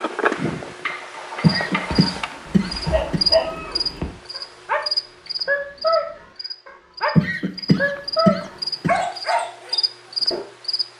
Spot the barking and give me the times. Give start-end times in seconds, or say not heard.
1.9-4.8, 5.5-10.4.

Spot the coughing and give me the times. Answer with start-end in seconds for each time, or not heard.
1.4-3.2, 7.2-8.9.